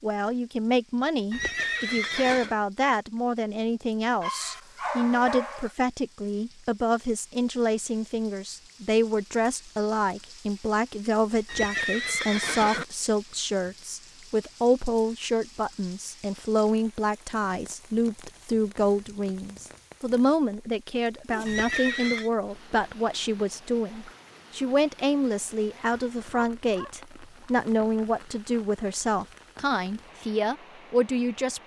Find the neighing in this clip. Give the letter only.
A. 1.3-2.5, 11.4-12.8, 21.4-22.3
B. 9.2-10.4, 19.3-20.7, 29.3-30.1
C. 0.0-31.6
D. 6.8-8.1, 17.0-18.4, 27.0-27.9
A.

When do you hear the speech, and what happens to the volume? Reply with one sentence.
You can hear the speech from 0.0 to 31.6 s, at a steady volume.